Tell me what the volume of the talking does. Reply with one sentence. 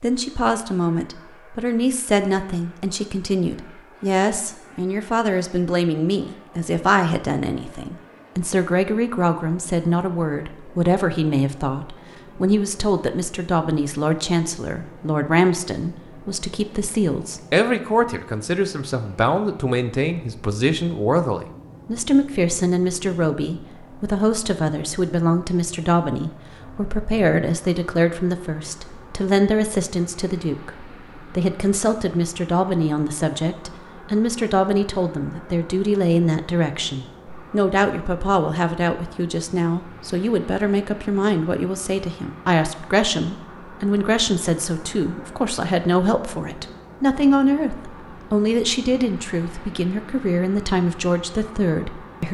The volume of the talking stays about the same.